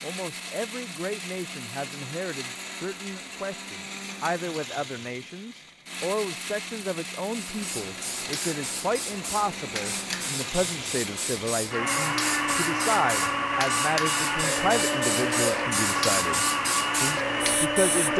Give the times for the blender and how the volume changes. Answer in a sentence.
You can hear the blender from 0.0 to 18.1 s, getting louder.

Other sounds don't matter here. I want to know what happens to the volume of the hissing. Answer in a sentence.
The volume of the hissing goes up.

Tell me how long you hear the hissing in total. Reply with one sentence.
The hissing can be heard for 11 seconds in total.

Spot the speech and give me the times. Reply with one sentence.
You can hear the speech from 0.0 to 18.1 s.